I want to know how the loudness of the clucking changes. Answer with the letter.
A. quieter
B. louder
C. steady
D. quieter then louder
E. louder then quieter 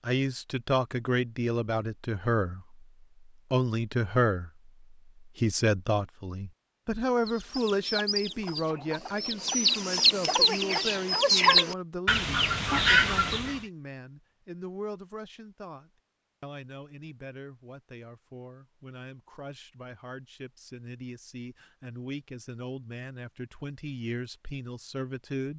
B.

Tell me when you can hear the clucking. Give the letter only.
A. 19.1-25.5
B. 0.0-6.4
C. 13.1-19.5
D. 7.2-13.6
D.